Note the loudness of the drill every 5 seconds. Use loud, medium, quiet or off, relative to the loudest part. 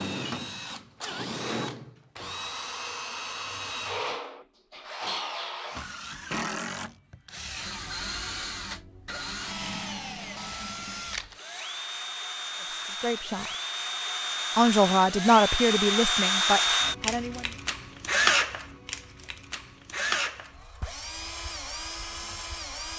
medium, medium, medium, loud, medium.